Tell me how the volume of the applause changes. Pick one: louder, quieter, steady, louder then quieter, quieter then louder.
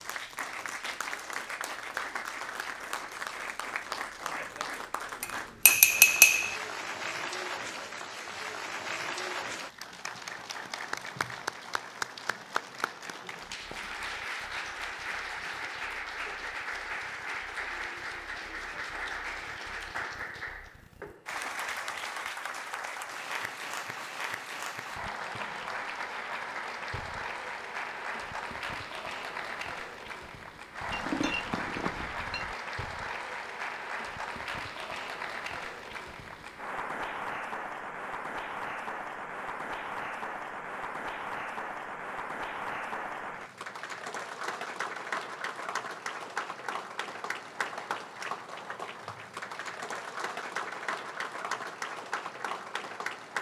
steady.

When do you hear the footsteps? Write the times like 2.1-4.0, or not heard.
not heard.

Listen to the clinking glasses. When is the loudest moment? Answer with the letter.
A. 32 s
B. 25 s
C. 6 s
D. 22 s
C.